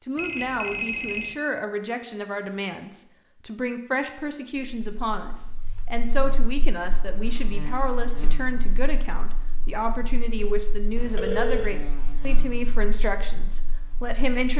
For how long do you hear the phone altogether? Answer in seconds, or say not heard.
2 s.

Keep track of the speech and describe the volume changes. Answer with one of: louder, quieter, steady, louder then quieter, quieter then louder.
steady.